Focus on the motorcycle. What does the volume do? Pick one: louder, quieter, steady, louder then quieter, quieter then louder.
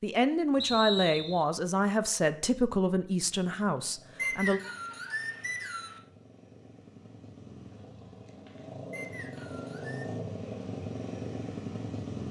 louder.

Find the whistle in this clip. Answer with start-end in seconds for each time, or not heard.
0.6-1.4, 4.2-6.0, 8.9-10.1.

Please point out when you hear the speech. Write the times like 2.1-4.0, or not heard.
0.0-4.6.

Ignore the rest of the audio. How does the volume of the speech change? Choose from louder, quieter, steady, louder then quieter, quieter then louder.
quieter.